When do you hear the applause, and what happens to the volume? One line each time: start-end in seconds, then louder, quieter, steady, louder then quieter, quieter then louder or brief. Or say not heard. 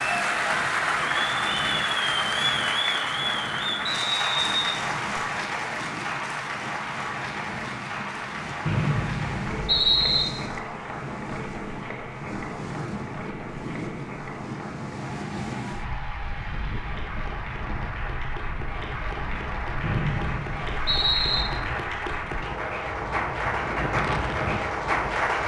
0.0-25.4 quieter then louder.